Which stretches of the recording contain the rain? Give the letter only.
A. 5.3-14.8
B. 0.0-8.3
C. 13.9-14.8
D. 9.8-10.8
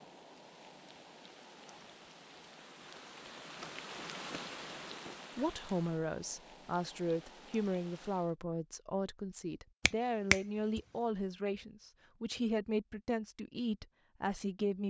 B.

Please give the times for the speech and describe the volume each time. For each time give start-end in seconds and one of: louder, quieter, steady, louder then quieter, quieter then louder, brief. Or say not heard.
5.3-14.8 steady.